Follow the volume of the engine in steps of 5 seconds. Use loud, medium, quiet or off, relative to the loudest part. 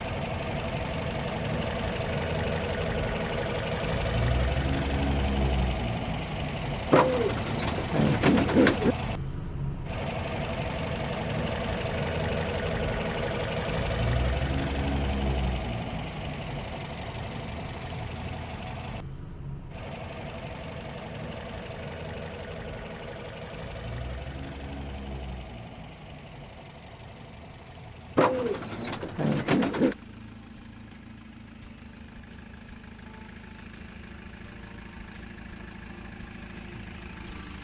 loud, loud, loud, medium, medium, quiet, quiet, quiet.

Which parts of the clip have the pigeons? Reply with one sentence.
You can hear the pigeons from 6.9 to 8.9 s and from 28.1 to 29.9 s.